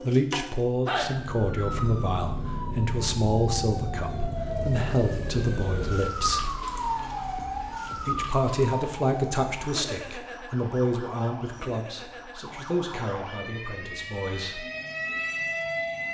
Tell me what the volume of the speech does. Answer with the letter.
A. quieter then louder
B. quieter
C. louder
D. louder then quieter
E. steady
B.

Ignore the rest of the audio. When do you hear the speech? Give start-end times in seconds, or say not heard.
0.0-6.5, 8.0-14.7.